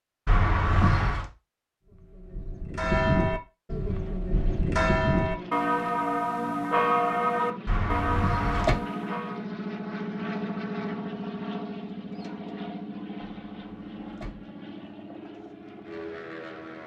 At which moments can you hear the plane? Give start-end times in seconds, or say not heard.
3.8-16.8.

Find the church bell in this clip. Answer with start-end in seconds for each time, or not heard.
1.9-9.4.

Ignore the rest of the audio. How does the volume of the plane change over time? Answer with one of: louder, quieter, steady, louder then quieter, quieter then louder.
louder then quieter.